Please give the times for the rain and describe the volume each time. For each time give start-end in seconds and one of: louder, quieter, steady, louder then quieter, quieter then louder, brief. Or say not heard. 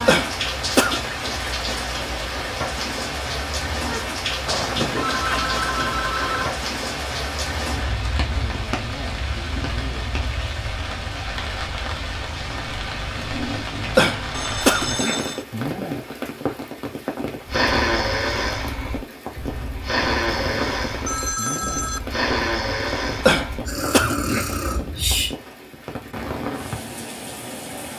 0.0-27.9 quieter.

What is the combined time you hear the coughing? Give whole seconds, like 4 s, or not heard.
4 s.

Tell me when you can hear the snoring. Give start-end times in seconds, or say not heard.
17.4-25.3.